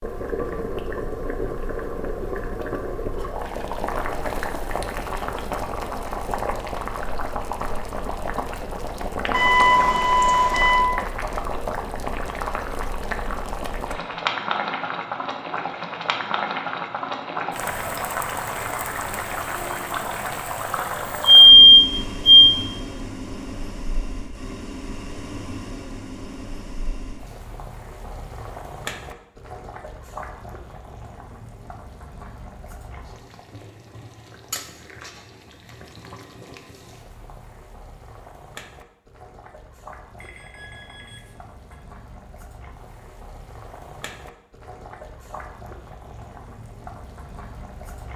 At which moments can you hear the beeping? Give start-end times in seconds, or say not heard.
9.3-10.8, 21.2-22.6, 40.1-41.8.